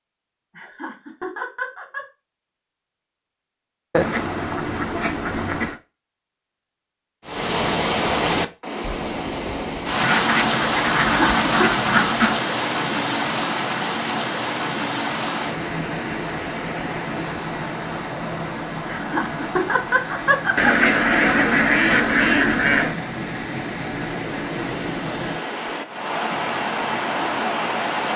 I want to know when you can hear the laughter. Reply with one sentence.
You can hear the laughter from 0.6 to 2.0 s, from 11.1 to 11.7 s and from 18.9 to 21.4 s.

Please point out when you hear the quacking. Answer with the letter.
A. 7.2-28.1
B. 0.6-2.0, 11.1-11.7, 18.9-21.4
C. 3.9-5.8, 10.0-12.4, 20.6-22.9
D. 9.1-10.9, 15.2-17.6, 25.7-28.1
C.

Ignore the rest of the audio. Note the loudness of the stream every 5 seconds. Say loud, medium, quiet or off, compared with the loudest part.
off, loud, loud, medium, medium, loud.